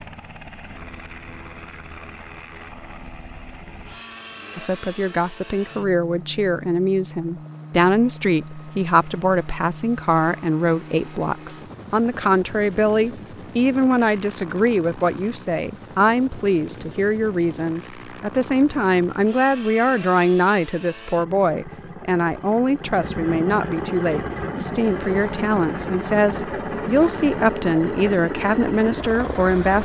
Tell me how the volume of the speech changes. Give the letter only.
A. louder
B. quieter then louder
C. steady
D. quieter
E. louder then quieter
C.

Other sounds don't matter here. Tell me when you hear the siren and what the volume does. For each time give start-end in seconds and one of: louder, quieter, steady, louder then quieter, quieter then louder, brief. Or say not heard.
not heard.